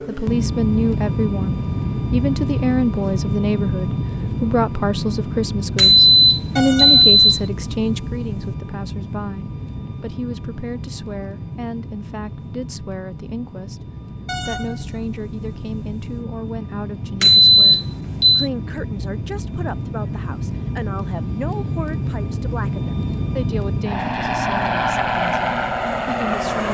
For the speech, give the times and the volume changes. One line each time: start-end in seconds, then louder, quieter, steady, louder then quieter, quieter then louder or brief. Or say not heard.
0.1-26.6 quieter.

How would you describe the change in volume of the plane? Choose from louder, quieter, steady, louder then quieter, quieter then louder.
quieter then louder.